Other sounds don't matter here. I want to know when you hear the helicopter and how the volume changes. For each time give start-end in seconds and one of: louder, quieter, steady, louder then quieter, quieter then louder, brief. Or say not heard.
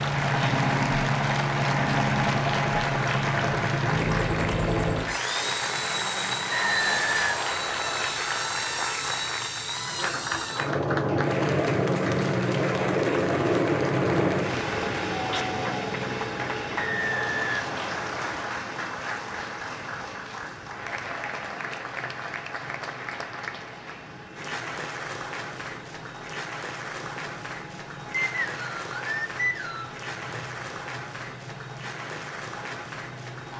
0.0-33.5 quieter.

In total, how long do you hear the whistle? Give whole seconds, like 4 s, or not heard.
5 s.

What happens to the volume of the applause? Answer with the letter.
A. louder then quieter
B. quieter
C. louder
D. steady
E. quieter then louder
B.